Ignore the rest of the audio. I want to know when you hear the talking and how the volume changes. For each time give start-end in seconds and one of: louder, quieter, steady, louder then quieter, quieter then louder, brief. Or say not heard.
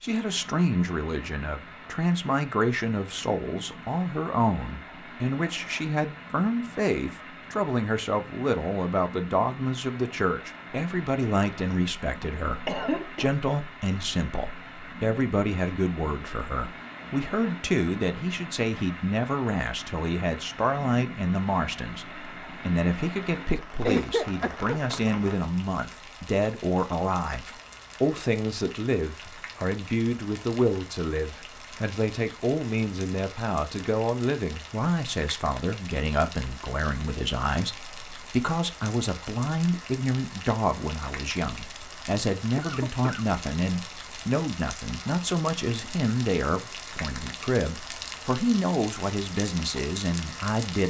0.0-50.8 steady.